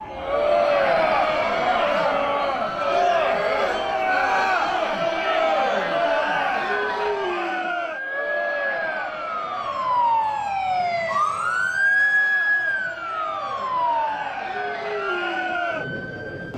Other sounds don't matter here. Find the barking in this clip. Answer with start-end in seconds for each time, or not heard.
not heard.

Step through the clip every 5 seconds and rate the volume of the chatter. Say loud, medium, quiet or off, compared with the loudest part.
loud, loud, quiet, medium.